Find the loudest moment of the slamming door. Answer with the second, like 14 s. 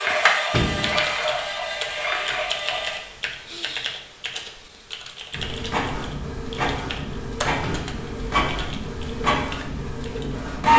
1 s.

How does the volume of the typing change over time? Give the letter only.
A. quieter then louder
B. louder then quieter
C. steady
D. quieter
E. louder
D.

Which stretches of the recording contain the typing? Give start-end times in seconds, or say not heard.
0.8-10.3.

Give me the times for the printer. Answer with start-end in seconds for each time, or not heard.
0.0-3.0, 5.3-10.7.